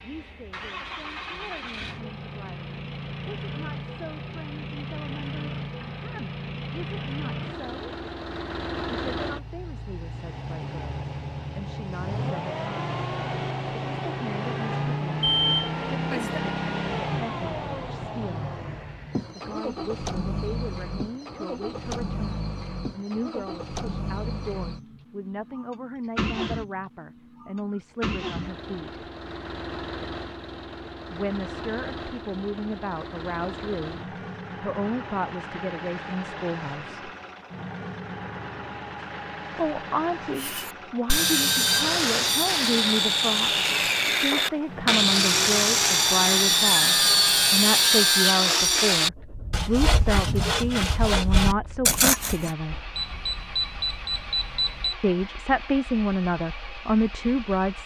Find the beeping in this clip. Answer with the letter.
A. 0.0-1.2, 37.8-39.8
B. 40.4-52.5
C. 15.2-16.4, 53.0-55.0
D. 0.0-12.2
C.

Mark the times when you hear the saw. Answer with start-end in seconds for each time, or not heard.
40.4-52.5.